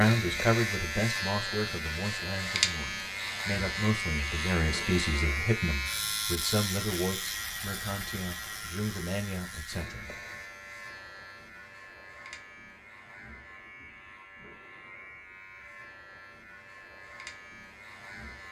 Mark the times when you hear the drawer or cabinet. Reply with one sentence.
The drawer or cabinet can't be heard in this clip.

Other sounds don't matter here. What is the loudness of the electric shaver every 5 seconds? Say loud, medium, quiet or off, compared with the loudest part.
loud, loud, quiet, quiet.